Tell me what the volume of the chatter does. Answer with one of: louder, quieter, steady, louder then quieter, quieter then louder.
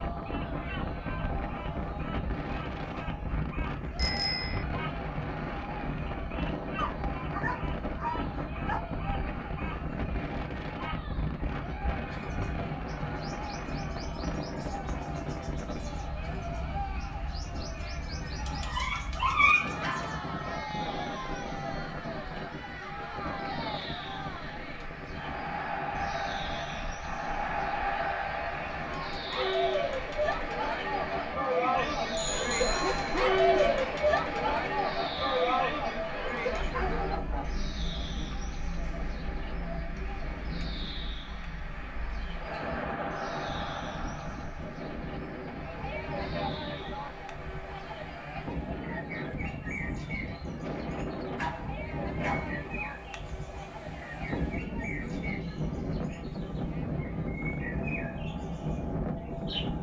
louder then quieter.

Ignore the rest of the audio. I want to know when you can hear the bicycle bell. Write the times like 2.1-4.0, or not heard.
4.0-4.7, 32.1-33.2.